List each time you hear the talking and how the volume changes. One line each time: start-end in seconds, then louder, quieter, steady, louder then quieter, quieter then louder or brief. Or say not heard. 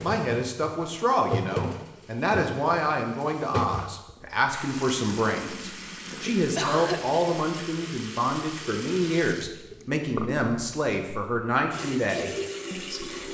0.0-13.2 steady.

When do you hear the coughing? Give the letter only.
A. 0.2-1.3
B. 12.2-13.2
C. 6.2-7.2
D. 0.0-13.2
C.